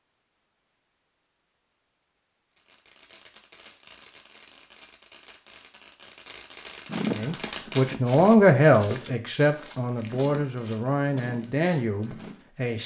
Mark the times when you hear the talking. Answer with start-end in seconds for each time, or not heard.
7.1-12.8.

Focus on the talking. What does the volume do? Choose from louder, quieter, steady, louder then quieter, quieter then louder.
quieter.